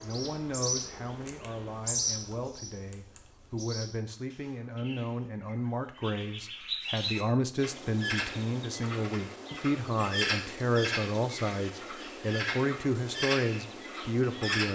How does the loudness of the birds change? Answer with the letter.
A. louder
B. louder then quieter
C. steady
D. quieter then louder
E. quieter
D.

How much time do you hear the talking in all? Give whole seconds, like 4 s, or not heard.
15 s.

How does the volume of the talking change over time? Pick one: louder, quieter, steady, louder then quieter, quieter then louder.
louder.